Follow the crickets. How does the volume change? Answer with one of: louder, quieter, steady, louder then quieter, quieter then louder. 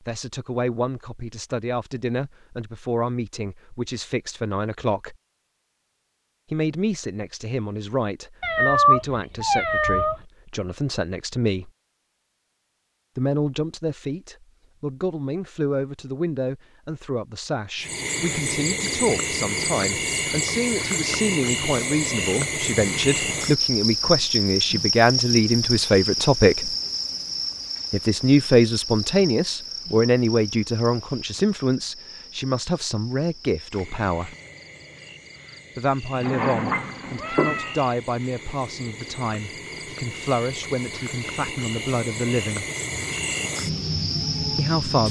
quieter then louder.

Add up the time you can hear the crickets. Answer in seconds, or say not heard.
27 s.